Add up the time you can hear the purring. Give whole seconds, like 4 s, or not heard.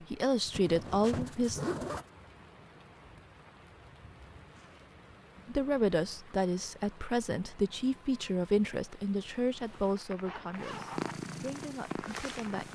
2 s.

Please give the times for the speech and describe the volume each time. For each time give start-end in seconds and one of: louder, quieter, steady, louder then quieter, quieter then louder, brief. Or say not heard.
0.1-1.6 brief
5.5-12.7 quieter.